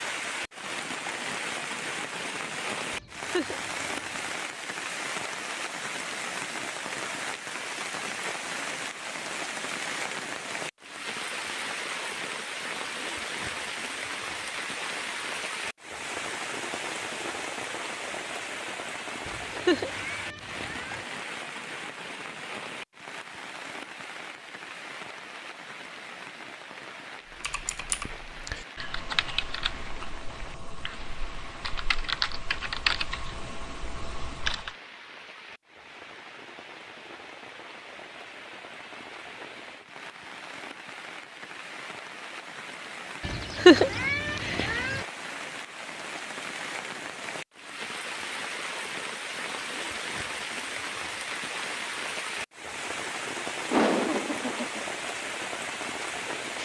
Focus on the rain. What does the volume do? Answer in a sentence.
The loudness of the rain goes down, then up.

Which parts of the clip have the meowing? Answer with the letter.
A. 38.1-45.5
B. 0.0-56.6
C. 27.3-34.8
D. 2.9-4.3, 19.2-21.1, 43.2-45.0
D.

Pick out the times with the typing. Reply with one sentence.
You can hear the typing from 27.3 to 34.8 s.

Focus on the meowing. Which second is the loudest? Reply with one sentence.
The loudest moment of the meowing is at 44 seconds.